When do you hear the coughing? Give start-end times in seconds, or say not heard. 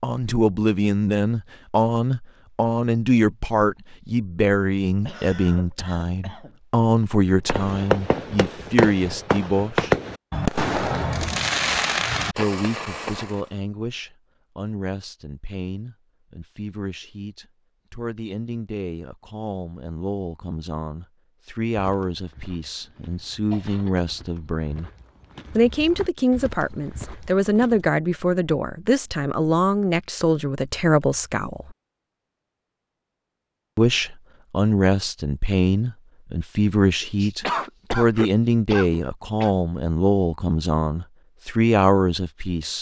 5.0-6.6, 22.9-24.1, 37.2-39.5.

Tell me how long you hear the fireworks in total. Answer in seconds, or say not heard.
6 s.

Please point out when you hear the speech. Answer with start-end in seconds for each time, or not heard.
0.0-9.9, 12.3-24.9, 25.5-31.8, 33.8-42.7.